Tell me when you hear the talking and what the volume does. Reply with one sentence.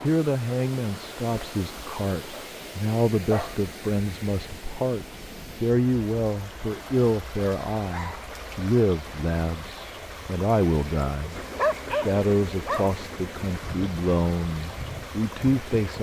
The talking can be heard from 0.0 to 15.9 s, at a steady volume.